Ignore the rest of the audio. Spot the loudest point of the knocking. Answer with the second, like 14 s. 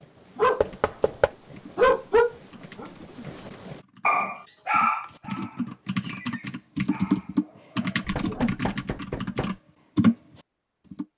1 s.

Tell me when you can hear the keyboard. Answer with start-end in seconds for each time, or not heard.
0.2-11.1.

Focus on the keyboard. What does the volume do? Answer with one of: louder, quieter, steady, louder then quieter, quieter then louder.
louder.